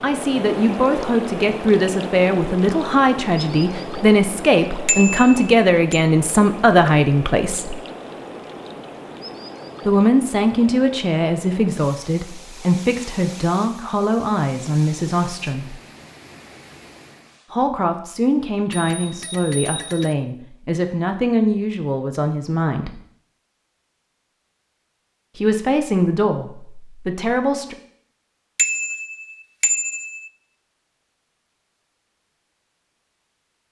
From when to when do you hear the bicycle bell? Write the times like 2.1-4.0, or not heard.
4.8-6.0, 18.7-20.1, 28.6-30.3.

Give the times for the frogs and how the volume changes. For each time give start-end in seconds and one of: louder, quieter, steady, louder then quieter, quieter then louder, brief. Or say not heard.
not heard.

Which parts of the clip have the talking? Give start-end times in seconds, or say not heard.
0.0-7.8, 9.8-15.8, 17.5-22.9, 25.4-27.8.